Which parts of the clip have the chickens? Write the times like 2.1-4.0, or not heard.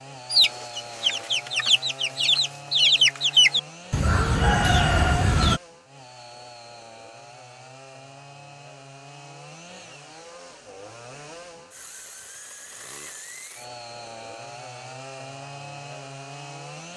0.3-5.6.